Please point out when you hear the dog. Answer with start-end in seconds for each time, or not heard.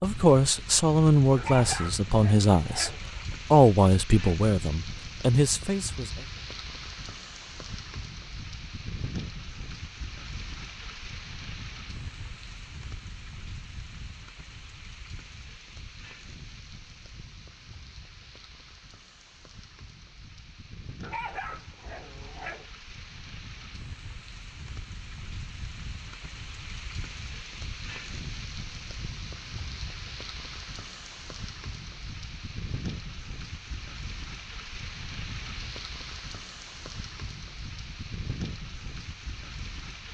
1.4-3.0, 21.0-22.6.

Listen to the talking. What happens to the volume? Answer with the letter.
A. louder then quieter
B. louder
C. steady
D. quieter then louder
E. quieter
C.